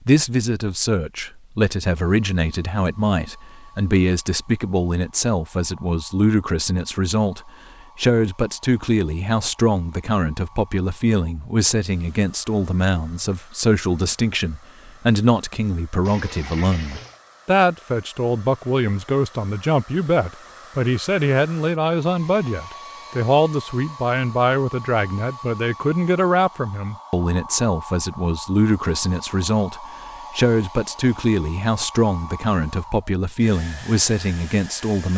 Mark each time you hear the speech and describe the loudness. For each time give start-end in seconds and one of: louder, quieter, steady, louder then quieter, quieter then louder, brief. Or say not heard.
0.1-35.1 steady.